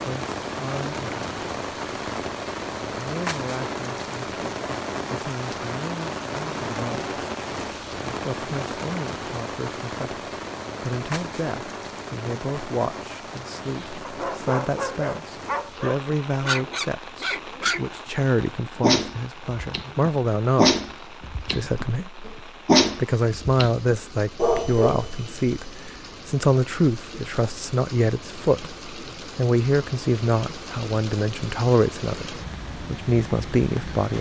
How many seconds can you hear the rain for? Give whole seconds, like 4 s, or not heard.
34 s.